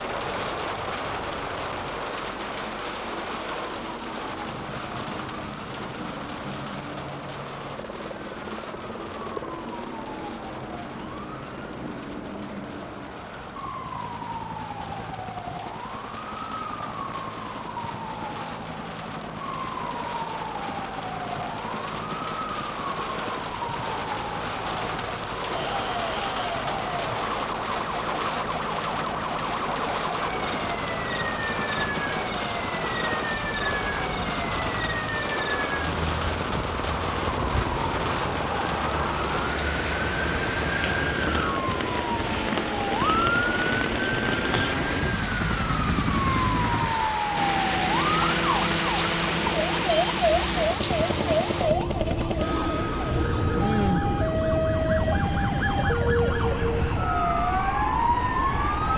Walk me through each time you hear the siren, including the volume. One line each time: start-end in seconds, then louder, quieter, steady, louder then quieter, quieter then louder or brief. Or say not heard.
0.0-58.9 louder.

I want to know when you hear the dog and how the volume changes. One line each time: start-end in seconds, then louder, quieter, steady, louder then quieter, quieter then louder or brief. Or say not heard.
not heard.